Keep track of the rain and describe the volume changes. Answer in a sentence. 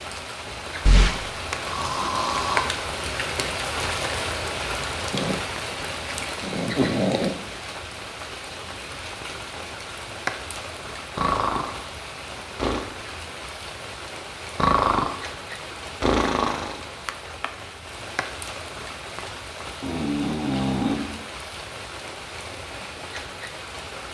The volume of the rain goes down.